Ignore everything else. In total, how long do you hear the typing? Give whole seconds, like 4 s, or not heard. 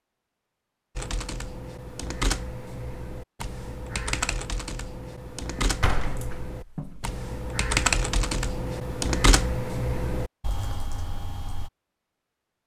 11 s.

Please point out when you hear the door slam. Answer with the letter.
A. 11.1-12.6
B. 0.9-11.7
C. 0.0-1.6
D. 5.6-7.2
D.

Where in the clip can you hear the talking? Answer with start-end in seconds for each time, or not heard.
not heard.